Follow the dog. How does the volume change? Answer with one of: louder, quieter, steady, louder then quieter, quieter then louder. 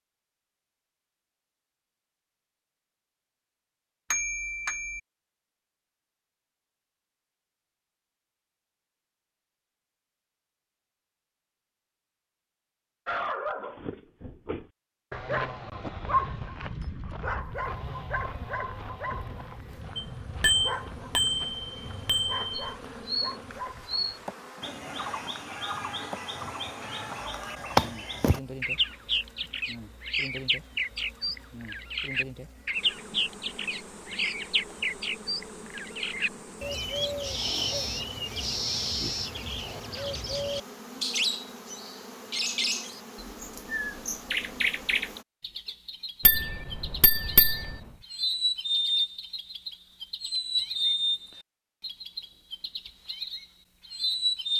quieter.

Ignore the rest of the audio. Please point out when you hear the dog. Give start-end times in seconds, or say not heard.
13.1-24.4.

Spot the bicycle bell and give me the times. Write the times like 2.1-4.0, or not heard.
4.1-5.0, 19.9-22.7, 46.2-47.6.